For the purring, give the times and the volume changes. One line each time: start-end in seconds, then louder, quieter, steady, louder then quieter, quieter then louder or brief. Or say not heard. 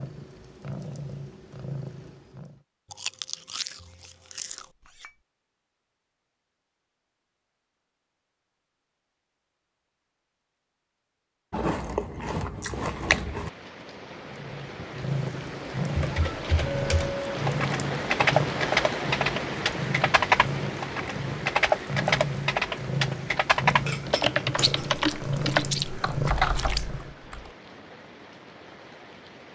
0.0-2.6 brief
14.2-27.2 steady.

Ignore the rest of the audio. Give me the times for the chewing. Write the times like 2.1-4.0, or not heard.
2.9-4.7, 11.5-13.5, 24.6-27.0.